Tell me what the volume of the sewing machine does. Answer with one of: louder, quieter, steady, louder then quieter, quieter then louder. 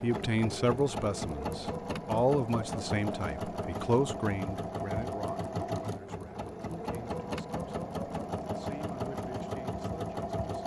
steady.